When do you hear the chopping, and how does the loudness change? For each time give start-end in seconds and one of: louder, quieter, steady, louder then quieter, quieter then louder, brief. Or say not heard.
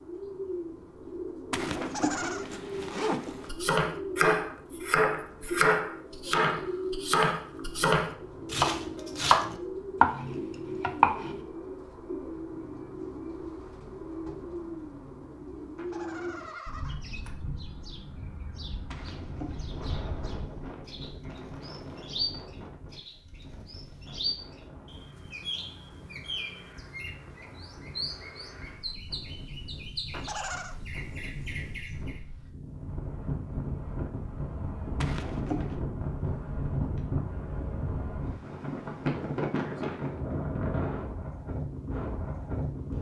3.5-11.4 steady.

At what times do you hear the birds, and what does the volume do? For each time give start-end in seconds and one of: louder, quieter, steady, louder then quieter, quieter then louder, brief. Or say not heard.
0.0-32.2 steady.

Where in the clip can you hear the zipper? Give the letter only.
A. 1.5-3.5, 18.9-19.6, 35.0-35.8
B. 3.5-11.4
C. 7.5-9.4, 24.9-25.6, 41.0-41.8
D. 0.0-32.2
A.